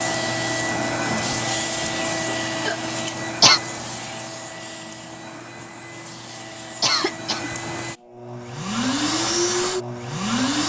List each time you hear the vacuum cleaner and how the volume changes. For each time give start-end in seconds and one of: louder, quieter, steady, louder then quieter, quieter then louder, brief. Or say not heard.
0.0-10.6 quieter then louder.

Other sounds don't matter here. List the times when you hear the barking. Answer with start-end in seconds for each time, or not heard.
not heard.